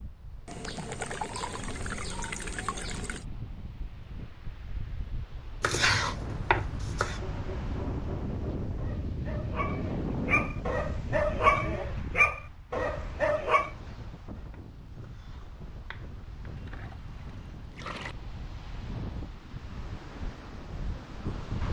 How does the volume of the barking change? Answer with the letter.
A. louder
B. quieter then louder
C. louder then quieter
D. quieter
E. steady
A.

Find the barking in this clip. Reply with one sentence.
The barking can be heard from 7.1 to 13.7 s.